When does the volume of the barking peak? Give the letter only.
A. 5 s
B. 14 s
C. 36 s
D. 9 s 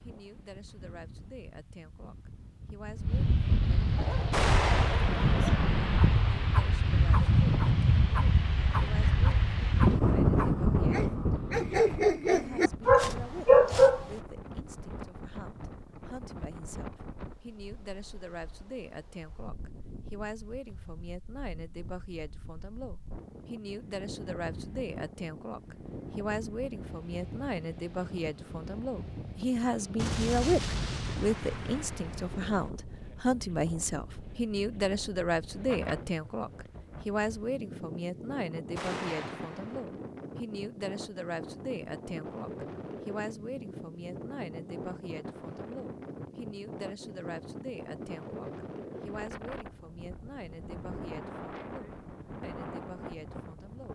B.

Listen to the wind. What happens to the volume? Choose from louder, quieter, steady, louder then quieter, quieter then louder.
quieter.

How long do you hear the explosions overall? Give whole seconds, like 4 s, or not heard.
5 s.